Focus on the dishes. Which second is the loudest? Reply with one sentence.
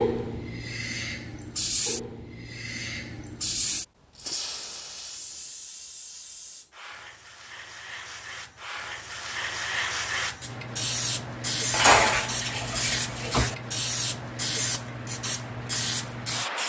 The volume of the dishes peaks at 12 seconds.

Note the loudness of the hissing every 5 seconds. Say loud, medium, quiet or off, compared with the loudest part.
loud, medium, loud, loud.